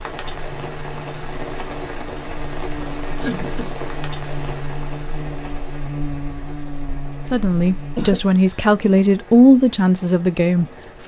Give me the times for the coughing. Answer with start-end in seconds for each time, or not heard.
3.1-3.8, 8.0-8.6.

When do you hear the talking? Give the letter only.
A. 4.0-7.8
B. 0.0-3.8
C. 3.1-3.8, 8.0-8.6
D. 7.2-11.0
D.